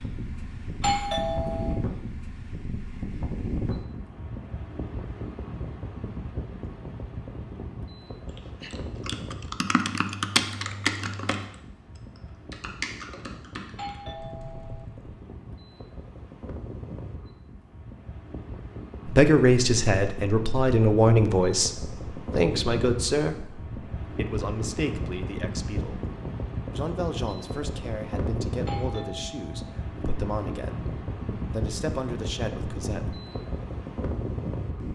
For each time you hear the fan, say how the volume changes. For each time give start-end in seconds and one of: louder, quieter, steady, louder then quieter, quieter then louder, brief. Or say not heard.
0.0-34.8 quieter then louder.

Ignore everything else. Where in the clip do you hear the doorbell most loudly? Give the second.
1 s.